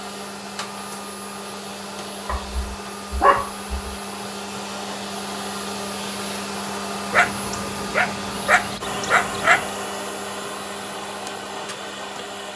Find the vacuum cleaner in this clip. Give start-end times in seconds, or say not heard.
0.0-12.5.